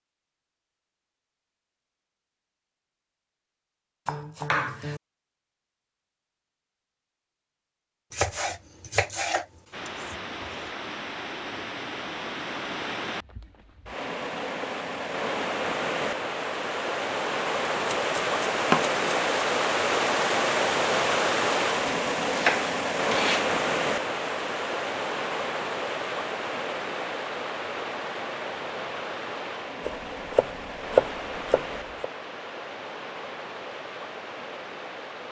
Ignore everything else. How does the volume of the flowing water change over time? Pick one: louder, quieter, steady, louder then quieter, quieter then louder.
louder then quieter.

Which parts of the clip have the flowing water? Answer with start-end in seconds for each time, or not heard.
9.7-35.2.